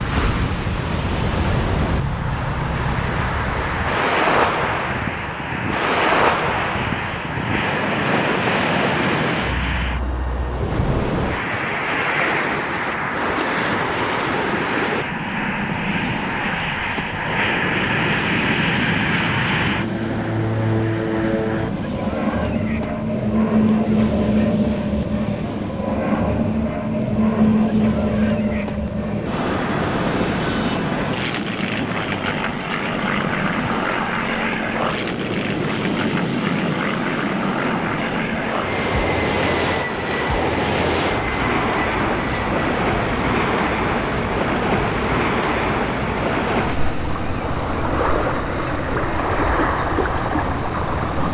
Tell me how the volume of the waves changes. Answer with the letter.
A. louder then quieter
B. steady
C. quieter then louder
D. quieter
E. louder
C.